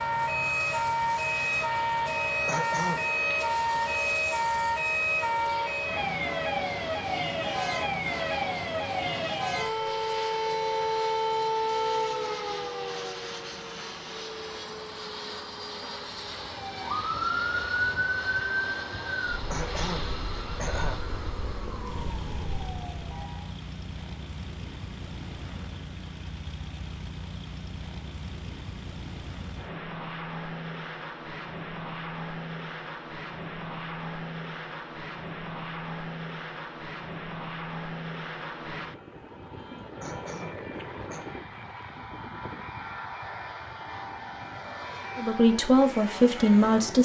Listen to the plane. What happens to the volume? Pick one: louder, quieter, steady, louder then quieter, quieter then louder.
steady.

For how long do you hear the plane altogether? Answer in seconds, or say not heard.
47 s.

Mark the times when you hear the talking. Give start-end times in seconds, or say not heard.
45.1-46.9.